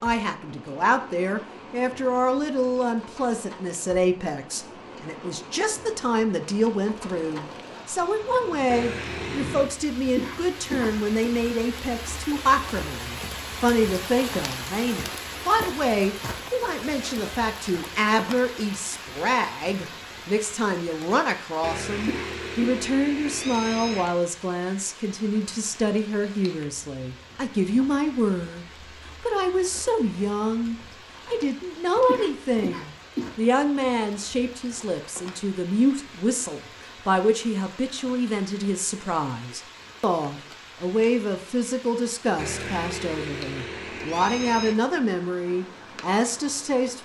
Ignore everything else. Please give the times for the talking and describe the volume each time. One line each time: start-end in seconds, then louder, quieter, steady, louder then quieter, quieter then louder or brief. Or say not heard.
0.0-46.9 steady.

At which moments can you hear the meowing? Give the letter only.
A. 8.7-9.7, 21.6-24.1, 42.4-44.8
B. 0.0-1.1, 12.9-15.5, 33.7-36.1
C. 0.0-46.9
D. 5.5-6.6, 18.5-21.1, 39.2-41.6
A.